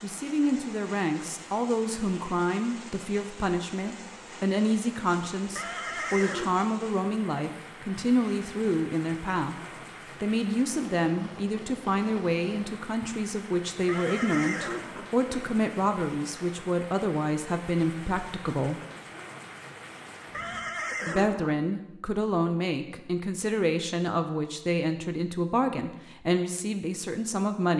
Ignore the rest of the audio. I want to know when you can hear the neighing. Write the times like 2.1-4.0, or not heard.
5.5-6.6, 13.8-15.1, 20.3-21.6.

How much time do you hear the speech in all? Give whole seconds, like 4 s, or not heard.
25 s.